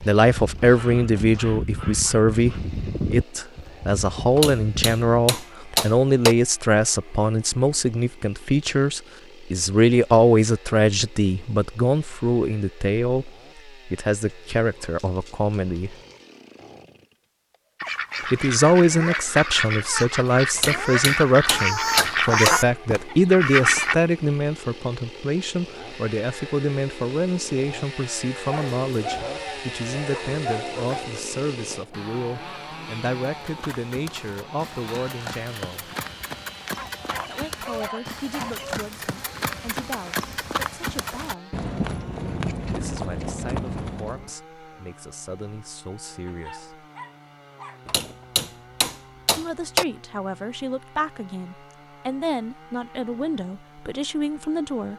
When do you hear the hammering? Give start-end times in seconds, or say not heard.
4.3-6.3, 20.6-22.6, 47.9-49.9.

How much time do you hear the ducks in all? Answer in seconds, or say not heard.
6 s.